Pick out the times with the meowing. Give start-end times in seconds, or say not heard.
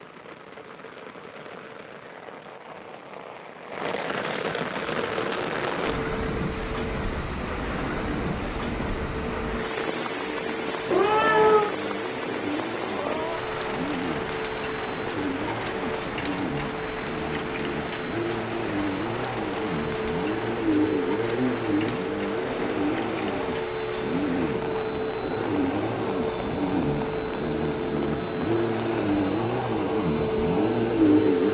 10.8-11.8.